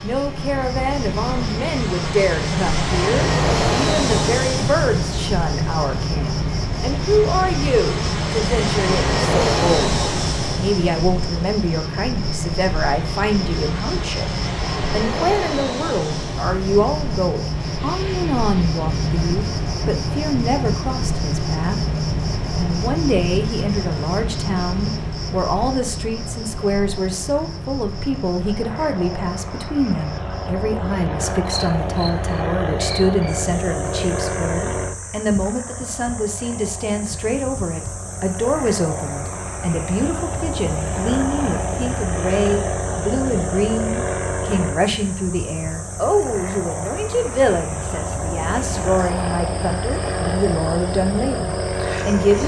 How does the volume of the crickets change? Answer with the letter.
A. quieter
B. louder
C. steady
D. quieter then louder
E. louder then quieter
A.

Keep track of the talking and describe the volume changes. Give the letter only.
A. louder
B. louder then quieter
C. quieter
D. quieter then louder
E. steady
E.